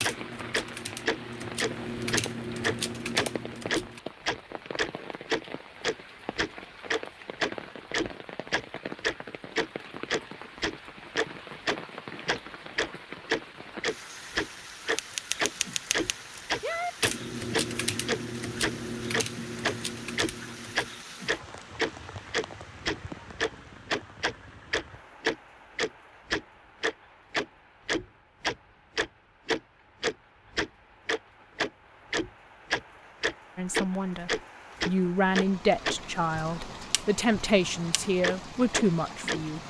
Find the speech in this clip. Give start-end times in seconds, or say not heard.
33.5-39.6.